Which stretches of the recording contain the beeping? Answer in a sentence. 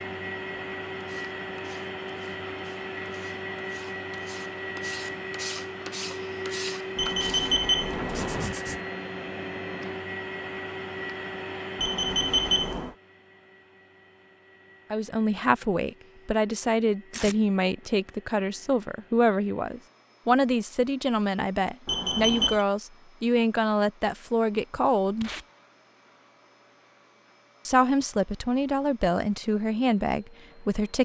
The beeping can be heard from 7.0 to 8.5 s, from 11.8 to 12.9 s and from 21.9 to 22.6 s.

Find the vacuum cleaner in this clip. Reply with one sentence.
The vacuum cleaner can be heard from 0.0 to 31.0 s.